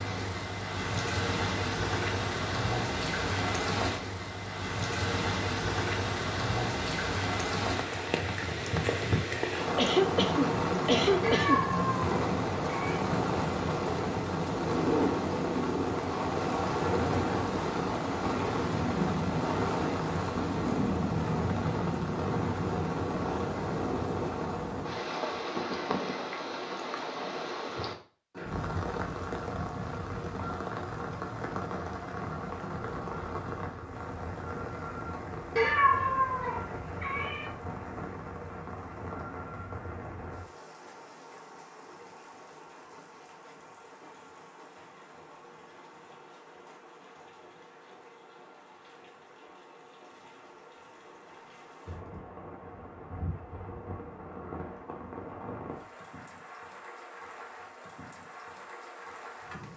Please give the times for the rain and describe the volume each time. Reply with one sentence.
The rain can be heard from 0.0 to 59.7 s, getting quieter.